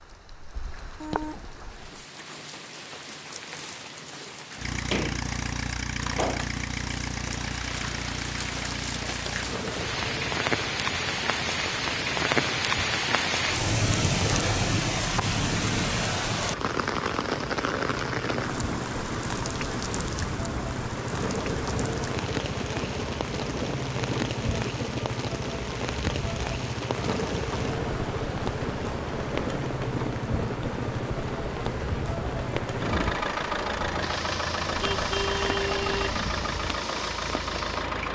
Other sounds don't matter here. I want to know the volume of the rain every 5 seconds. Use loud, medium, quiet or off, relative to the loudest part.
quiet, medium, loud, loud, medium, medium, medium, medium.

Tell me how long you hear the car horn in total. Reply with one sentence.
The car horn can be heard for 2 seconds in total.